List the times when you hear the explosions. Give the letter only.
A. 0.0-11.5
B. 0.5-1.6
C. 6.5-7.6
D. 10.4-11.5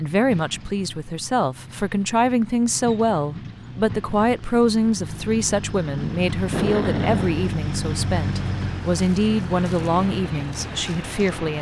C.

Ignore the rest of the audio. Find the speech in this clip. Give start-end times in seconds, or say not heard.
0.0-11.5.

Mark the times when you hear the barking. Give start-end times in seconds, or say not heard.
not heard.